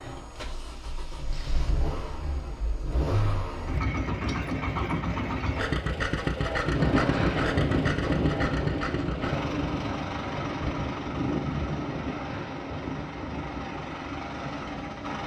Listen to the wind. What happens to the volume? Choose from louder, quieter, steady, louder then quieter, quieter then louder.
quieter.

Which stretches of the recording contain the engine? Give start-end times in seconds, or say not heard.
0.0-15.2.